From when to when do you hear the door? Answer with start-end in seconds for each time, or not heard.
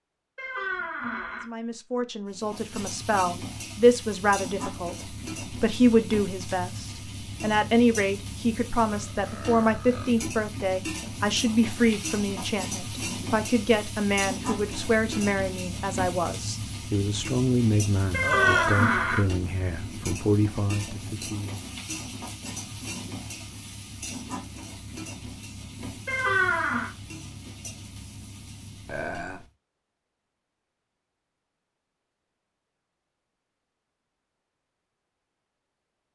0.3-1.4, 18.1-19.2, 26.1-26.9.